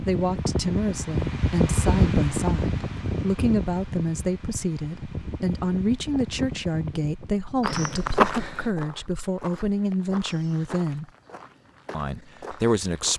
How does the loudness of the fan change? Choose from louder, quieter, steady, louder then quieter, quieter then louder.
quieter.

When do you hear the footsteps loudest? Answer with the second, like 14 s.
8 s.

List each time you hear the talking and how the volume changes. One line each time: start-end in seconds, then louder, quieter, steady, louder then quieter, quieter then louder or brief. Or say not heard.
0.0-11.1 steady
11.9-13.1 brief.